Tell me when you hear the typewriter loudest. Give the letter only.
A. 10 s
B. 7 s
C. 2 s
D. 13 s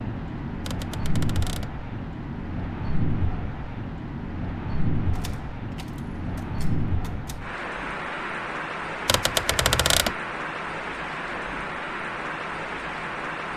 A.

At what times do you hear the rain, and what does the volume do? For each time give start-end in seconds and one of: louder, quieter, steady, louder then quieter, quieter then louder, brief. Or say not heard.
0.0-13.5 steady.